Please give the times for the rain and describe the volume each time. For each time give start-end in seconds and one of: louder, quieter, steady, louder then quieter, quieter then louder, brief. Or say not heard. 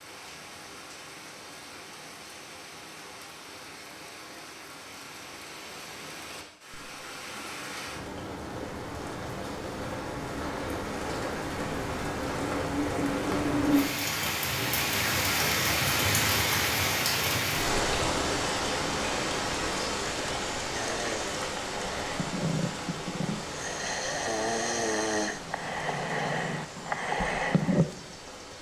0.0-28.5 louder then quieter.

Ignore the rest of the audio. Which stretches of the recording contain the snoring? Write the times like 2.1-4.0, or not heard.
20.7-27.9.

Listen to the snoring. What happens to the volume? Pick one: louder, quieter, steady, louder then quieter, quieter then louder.
louder.